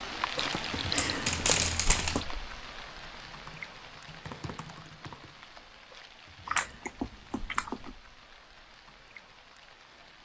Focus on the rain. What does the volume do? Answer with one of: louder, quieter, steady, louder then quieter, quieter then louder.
quieter.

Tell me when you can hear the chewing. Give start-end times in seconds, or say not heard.
0.3-2.2, 6.5-8.0.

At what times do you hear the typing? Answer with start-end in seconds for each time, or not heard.
2.5-5.5.